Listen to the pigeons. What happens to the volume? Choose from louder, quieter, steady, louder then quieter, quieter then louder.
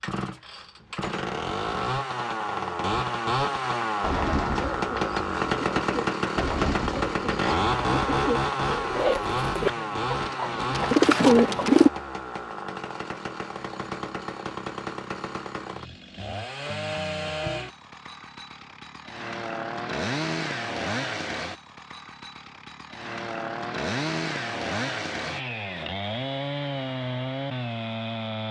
louder.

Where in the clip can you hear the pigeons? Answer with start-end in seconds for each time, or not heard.
3.9-11.9.